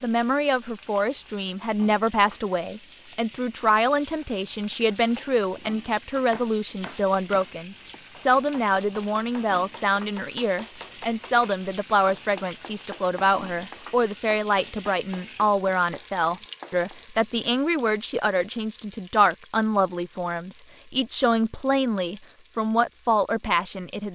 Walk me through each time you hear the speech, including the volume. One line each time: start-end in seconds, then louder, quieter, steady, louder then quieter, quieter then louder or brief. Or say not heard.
0.0-24.1 steady.